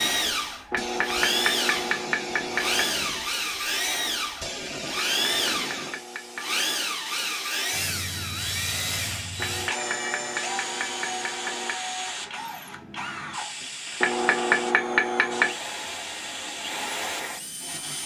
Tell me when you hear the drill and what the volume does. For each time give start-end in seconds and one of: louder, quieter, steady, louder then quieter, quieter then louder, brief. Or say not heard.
0.0-18.0 quieter.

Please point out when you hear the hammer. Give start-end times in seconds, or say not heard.
0.7-2.9, 5.0-6.7, 9.3-11.8, 14.0-15.6.